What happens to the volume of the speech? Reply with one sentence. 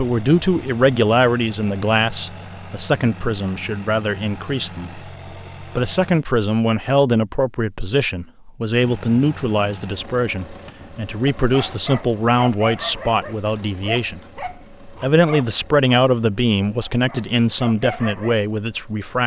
The loudness of the speech stays about the same.